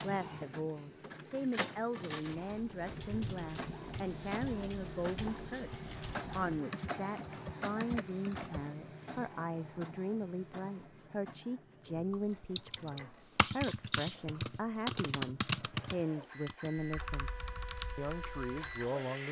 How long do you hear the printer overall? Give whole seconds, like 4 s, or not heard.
19 s.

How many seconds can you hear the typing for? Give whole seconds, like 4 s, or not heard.
13 s.